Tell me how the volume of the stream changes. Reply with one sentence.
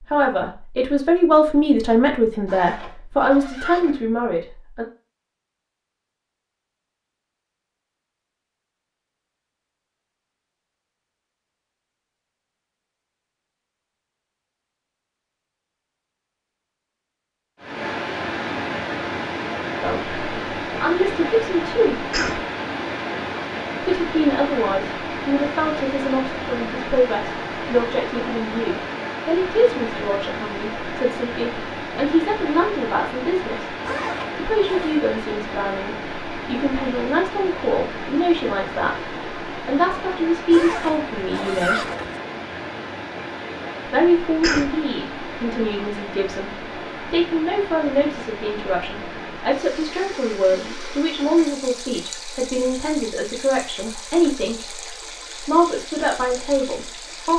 The loudness of the stream goes down.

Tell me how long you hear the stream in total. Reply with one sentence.
The stream can be heard for 40 seconds in total.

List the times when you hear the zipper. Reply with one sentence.
You can hear the zipper from 2.5 to 4.0 s, from 33.8 to 35.0 s and from 40.5 to 42.2 s.